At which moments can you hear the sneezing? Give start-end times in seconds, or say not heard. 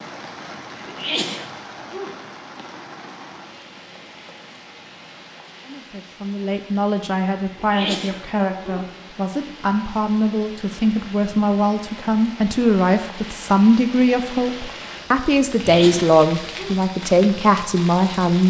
0.8-2.1, 7.5-8.9, 15.6-16.8.